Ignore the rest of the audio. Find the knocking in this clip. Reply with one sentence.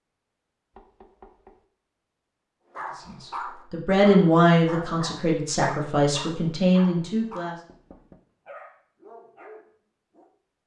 You can hear the knocking from 0.7 to 1.6 s and from 7.5 to 8.2 s.